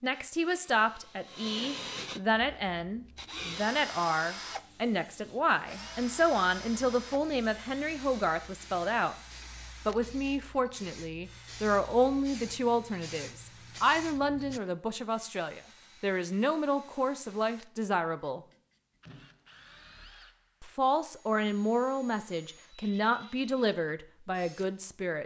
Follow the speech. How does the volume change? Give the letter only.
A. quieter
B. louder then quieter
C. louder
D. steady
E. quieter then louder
D.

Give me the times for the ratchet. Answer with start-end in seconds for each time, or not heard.
not heard.